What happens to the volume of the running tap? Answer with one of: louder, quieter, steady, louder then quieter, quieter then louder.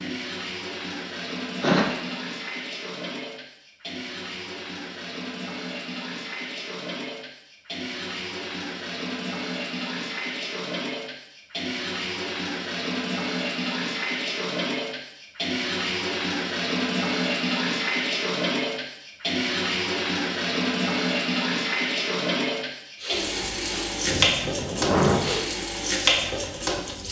louder.